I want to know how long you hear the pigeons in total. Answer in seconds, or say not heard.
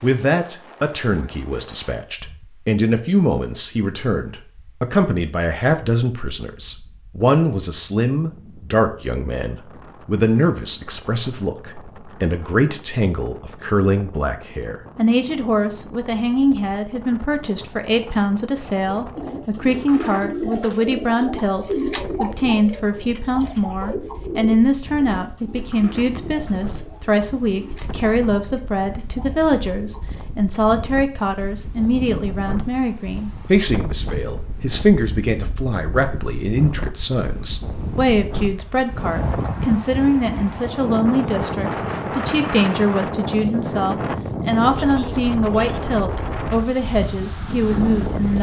11 s.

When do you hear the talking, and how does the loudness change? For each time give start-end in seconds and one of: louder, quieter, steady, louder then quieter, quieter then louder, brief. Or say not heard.
0.0-48.3 steady.